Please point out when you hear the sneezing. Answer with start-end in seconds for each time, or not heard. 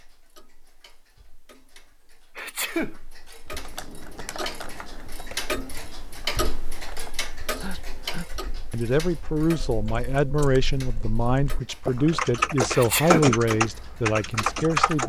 2.4-3.0, 7.6-8.2, 12.7-13.3.